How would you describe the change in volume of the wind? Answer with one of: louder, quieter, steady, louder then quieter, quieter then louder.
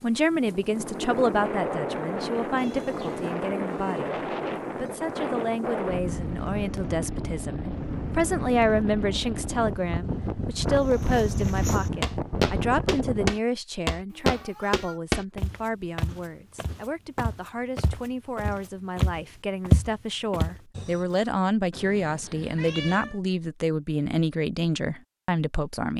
steady.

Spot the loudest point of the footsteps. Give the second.
20 s.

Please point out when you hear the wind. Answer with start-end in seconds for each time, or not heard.
0.0-13.3.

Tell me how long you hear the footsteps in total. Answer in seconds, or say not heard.
10 s.